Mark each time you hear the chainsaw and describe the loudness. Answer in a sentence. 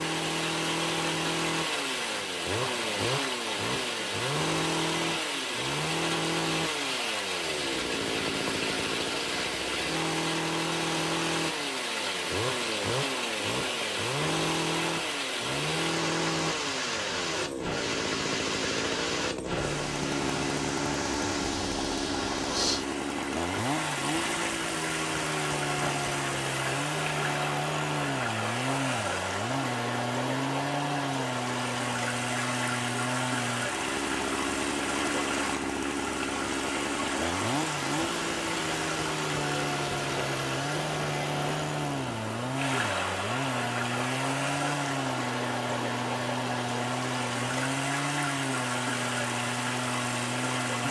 You can hear the chainsaw from 0.0 to 50.8 s, at a steady volume.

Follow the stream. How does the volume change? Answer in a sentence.
The volume of the stream stays about the same.